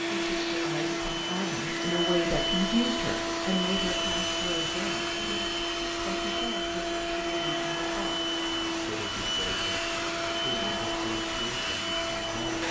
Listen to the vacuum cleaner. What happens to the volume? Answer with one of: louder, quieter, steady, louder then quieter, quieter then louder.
steady.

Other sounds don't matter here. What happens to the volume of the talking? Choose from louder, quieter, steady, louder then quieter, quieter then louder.
quieter.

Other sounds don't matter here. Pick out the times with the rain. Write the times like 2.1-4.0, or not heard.
0.0-12.6.